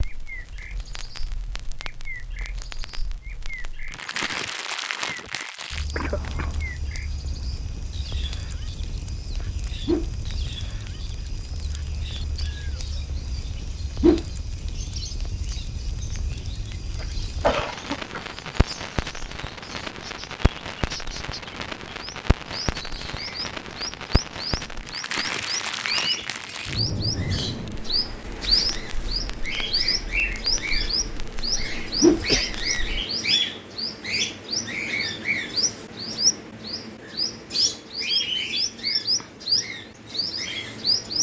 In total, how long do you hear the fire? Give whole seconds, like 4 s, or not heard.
33 s.